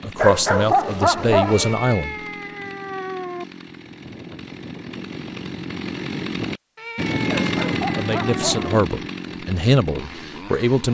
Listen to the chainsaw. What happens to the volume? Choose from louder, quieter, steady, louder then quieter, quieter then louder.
louder then quieter.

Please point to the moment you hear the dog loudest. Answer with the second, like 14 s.
1 s.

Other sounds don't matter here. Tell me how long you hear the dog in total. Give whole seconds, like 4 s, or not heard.
3 s.